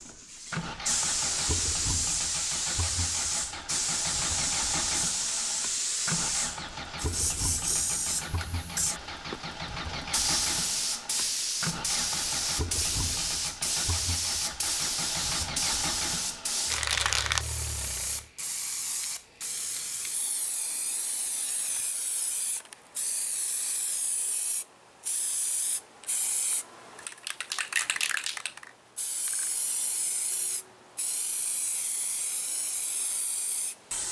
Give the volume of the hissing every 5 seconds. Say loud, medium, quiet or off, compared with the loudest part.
loud, loud, loud, loud, medium, medium, medium.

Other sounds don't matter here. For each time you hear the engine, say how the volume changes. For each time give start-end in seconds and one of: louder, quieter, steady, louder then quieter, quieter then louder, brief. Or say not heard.
0.0-18.3 steady.